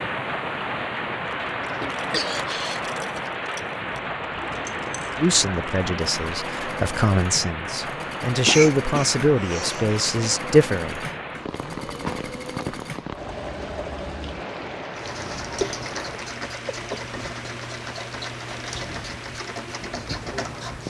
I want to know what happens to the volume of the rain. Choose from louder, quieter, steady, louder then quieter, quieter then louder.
quieter.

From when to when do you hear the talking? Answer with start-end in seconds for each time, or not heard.
5.2-11.1.